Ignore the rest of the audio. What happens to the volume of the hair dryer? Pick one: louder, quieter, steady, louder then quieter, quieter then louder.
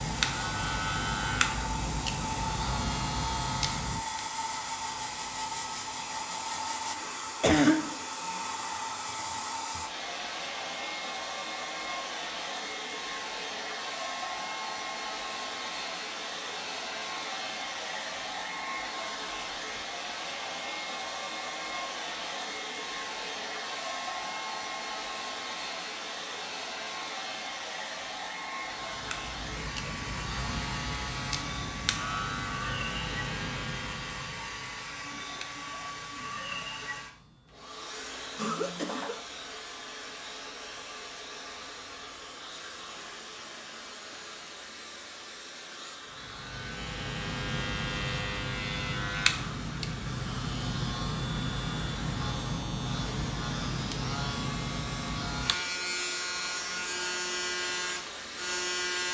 quieter.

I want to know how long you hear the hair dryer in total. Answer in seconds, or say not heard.
59 s.